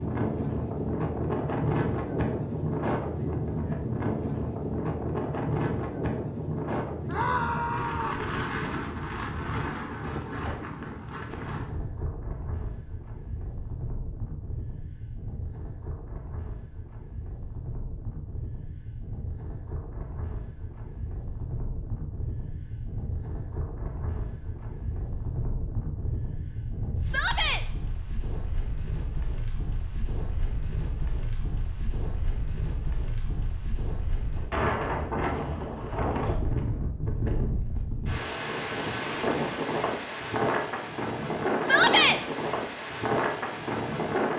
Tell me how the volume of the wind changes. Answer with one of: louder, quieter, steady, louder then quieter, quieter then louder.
quieter then louder.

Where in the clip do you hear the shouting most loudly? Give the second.
42 s.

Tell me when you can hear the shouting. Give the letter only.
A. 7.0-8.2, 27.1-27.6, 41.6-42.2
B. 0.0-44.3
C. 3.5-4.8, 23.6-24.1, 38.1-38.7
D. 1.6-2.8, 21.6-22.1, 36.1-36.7
A.